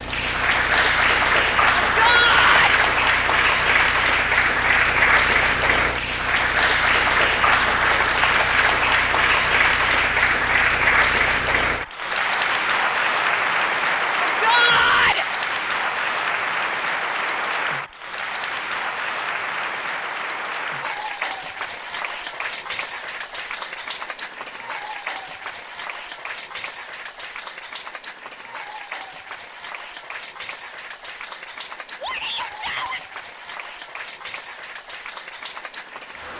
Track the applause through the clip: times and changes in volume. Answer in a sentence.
You can hear the applause from 0.0 to 36.3 s, getting quieter.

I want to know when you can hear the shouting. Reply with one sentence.
You can hear the shouting from 1.9 to 2.8 s, from 14.2 to 15.2 s and from 32.0 to 33.0 s.